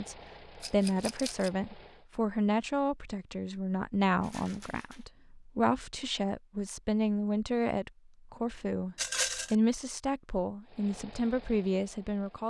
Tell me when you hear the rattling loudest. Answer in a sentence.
The loudest moment of the rattling is at 9 seconds.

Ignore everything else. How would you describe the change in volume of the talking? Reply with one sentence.
The volume of the talking stays about the same.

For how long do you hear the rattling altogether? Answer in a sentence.
The rattling can be heard for 2 seconds in total.